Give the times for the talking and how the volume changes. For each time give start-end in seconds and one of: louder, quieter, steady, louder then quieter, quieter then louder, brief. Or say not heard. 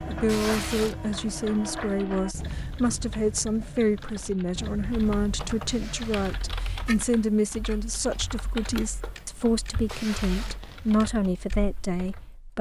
0.1-12.5 steady.